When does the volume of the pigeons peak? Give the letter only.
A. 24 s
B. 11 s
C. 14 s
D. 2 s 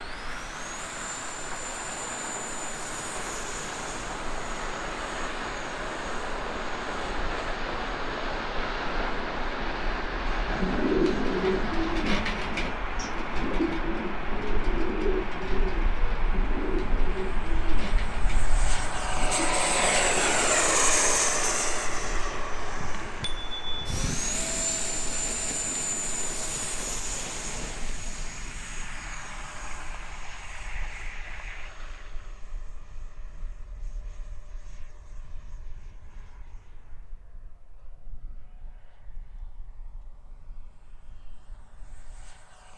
B.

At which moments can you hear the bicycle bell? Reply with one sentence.
The bicycle bell can be heard from 22.8 to 24.2 s.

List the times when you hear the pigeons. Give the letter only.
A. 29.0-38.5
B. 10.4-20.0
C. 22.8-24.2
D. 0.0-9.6
B.